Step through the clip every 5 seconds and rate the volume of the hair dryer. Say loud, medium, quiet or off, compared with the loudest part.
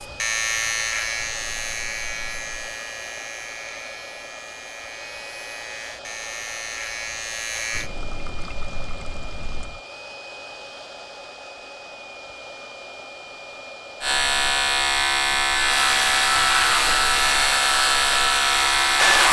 quiet, quiet, quiet, loud.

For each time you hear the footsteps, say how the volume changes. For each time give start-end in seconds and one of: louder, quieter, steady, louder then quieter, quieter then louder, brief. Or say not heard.
not heard.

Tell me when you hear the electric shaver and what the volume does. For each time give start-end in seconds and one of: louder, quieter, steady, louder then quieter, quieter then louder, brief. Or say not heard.
0.0-7.9 quieter then louder
14.0-19.2 steady.